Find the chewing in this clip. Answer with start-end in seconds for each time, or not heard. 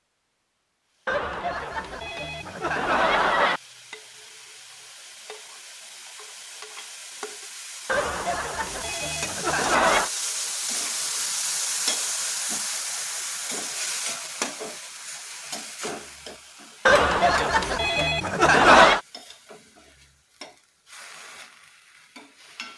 not heard.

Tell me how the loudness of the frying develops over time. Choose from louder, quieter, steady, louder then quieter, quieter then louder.
louder then quieter.